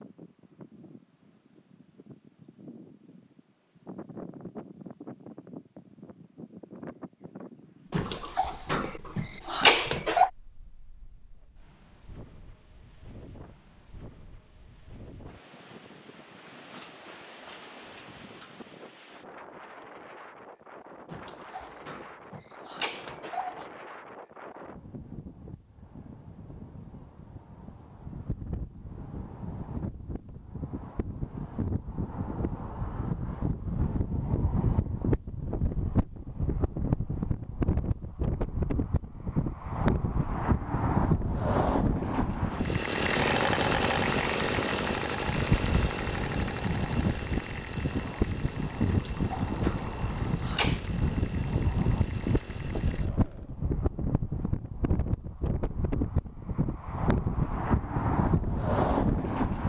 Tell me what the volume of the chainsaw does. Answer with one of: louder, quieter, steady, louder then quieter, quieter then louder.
quieter.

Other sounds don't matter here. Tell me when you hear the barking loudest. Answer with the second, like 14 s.
10 s.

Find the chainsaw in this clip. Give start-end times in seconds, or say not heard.
42.5-53.5.